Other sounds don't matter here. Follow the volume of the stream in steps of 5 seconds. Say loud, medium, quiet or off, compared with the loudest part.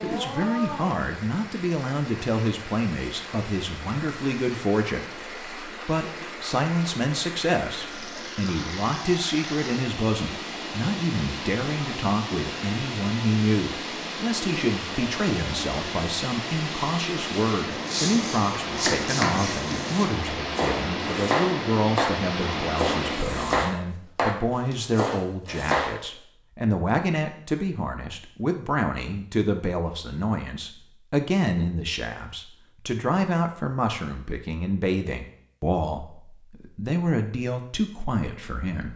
medium, medium, loud, loud, loud, off, off, off.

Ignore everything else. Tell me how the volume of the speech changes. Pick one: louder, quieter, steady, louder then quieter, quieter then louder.
steady.